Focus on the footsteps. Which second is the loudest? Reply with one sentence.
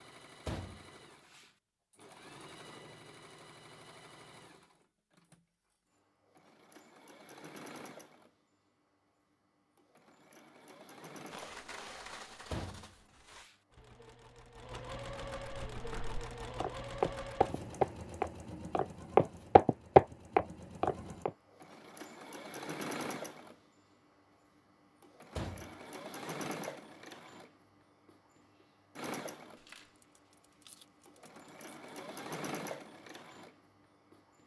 The volume of the footsteps peaks at 20 seconds.